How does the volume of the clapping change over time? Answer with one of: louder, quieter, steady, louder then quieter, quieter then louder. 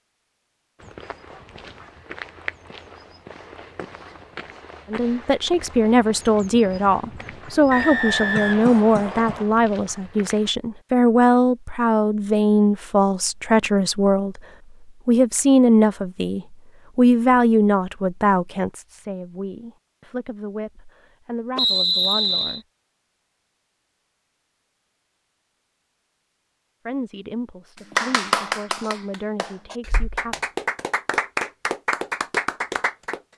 quieter then louder.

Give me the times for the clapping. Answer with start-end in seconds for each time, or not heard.
27.9-33.2.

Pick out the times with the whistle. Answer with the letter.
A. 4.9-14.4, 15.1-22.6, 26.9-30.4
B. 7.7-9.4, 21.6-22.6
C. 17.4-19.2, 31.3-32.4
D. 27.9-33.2
B.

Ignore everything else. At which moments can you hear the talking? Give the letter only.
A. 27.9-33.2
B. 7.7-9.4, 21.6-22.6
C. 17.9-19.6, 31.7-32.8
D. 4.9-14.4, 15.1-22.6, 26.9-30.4
D.